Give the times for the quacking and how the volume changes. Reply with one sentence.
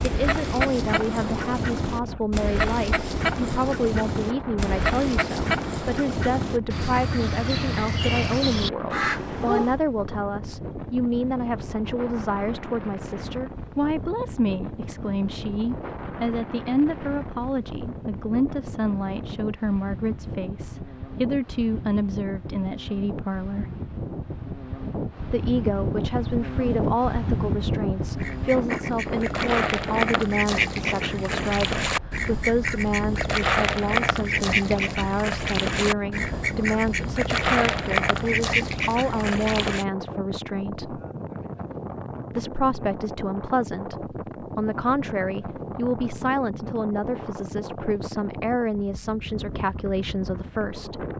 You can hear the quacking from 0.0 to 9.8 s, at a steady volume; and from 28.1 to 39.9 s, at a steady volume.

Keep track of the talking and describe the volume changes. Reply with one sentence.
The loudness of the talking stays about the same.